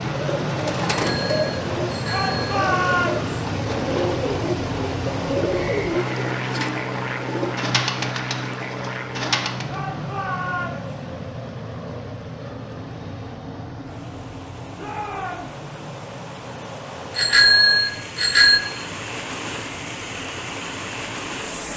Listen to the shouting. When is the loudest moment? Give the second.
3 s.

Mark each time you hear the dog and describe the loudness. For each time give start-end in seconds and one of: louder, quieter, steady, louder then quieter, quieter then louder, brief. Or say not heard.
not heard.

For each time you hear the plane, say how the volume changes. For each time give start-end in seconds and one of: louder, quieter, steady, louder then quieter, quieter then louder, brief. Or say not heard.
0.0-21.7 quieter.